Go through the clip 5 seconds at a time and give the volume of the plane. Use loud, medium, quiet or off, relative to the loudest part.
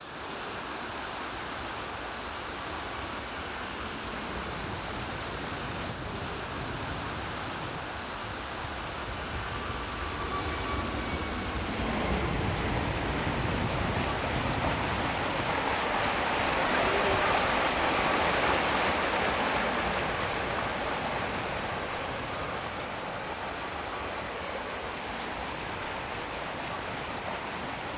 medium, medium, loud, medium, medium, quiet.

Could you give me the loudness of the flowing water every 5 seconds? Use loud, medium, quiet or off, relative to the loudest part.
medium, medium, medium, loud, medium, medium.